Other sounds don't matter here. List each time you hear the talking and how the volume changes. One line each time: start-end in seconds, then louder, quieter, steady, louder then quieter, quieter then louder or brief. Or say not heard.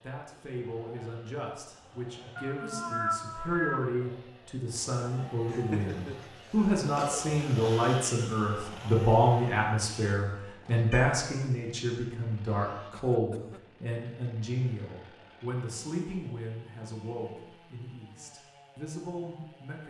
0.0-19.8 louder then quieter.